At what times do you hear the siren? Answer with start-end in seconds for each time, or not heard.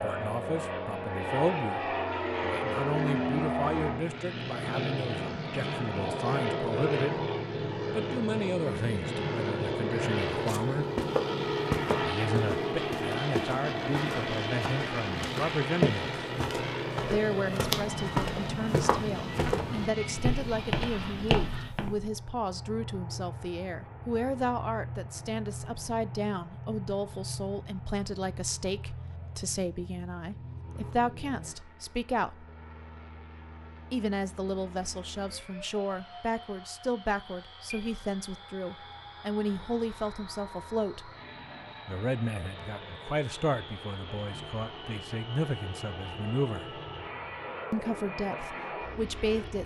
not heard.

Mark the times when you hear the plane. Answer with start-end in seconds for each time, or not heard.
0.0-49.6.